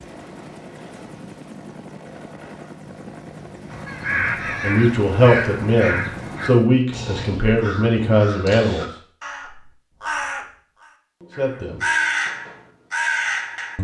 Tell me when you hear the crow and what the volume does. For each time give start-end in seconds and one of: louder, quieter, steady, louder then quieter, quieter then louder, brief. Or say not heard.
3.7-13.7 quieter then louder.